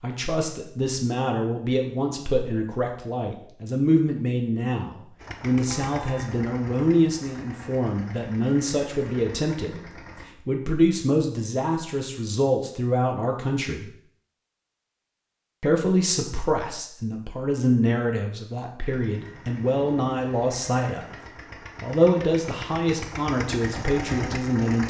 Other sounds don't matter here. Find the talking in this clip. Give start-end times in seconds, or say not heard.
0.0-13.9, 15.6-21.1, 21.8-24.8.